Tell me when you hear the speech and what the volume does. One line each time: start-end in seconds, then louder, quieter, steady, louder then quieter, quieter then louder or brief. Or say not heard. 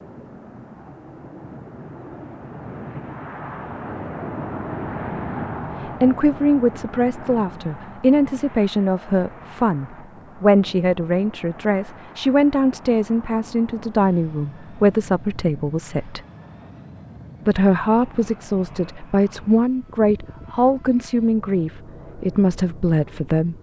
6.0-16.2 steady
17.4-23.5 steady.